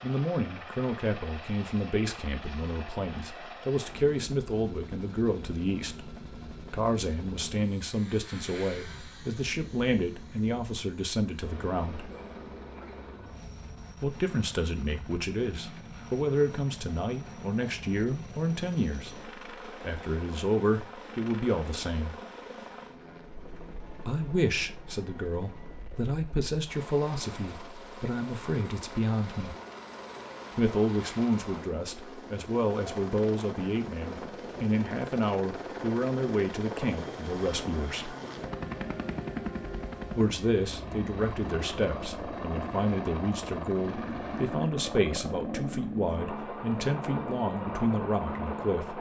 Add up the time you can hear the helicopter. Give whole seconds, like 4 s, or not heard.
49 s.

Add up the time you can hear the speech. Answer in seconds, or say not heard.
42 s.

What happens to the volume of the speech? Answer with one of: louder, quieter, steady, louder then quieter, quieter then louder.
steady.